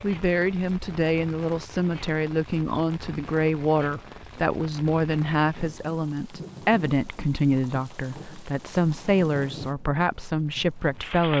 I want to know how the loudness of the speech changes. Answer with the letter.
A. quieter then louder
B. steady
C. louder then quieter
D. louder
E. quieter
B.